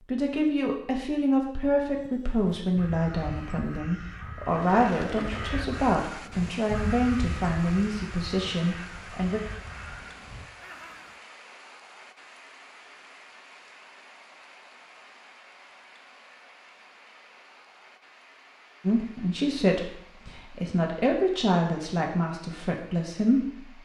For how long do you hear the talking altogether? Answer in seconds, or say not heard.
14 s.